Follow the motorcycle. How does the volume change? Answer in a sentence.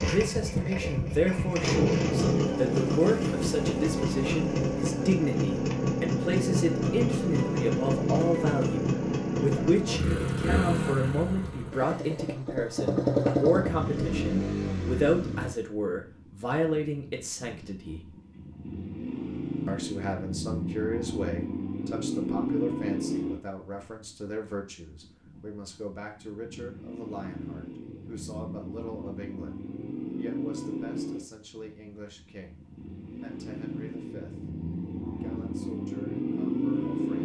The volume of the motorcycle goes down.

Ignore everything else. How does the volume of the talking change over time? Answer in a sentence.
The volume of the talking goes down.